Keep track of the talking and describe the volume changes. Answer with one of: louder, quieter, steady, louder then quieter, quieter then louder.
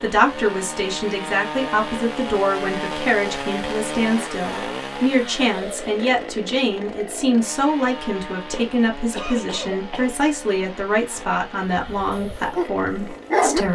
steady.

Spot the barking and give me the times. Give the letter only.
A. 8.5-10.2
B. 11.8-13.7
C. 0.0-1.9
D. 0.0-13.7
B.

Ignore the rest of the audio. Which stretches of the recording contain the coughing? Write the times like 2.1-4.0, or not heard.
8.5-10.2.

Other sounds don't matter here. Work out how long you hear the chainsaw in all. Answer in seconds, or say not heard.
14 s.